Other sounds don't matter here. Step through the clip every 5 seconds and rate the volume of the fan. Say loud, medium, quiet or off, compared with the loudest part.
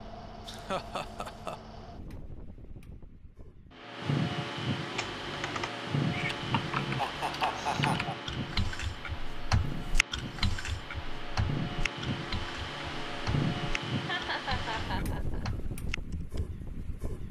loud, loud, loud, medium.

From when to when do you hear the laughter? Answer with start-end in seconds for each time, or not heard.
0.5-1.6, 7.0-8.2, 14.1-15.4.